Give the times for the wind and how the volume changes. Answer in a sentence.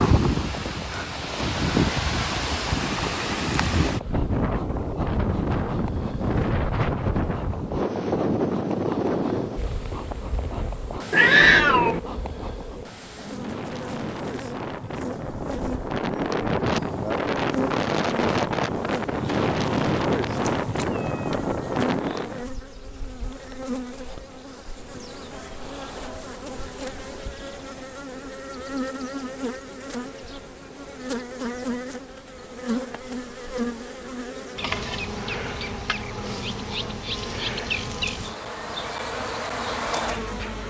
You can hear the wind from 0.0 to 22.4 s, getting quieter then louder.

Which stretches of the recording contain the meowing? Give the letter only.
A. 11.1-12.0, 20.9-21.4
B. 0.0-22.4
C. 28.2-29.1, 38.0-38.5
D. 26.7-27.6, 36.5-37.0
A.